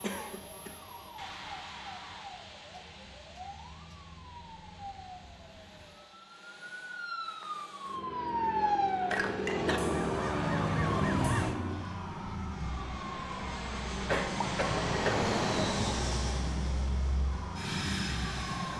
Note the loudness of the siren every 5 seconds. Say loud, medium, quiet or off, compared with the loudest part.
quiet, loud, loud, medium.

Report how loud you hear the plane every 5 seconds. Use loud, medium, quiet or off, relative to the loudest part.
quiet, medium, loud, loud.